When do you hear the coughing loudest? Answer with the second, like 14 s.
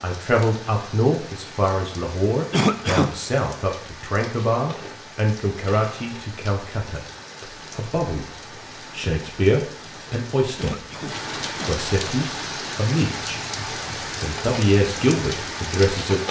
3 s.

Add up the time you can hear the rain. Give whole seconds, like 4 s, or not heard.
16 s.